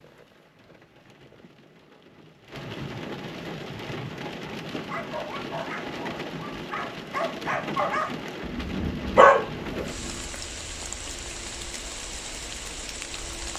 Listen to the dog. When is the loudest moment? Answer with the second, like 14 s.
9 s.